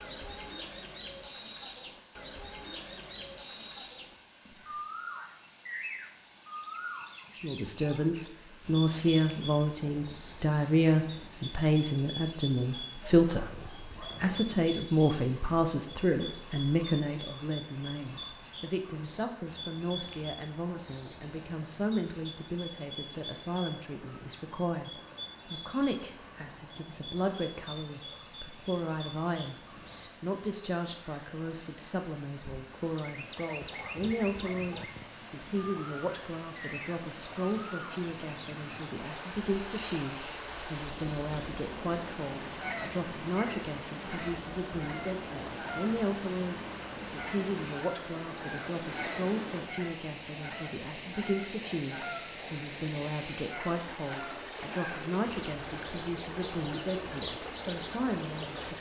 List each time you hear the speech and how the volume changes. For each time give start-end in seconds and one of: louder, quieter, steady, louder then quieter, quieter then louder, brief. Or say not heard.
7.3-29.6 quieter
30.2-58.7 steady.